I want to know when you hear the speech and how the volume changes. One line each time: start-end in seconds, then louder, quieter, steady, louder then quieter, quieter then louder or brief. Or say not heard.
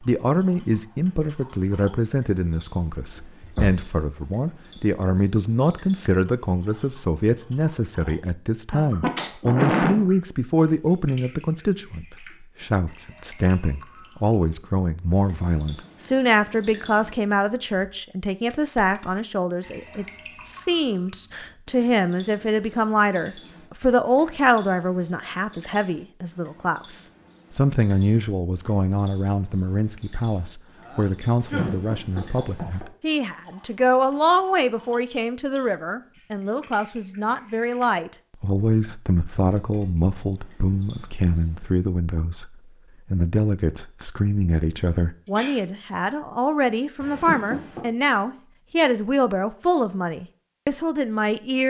0.0-51.6 steady.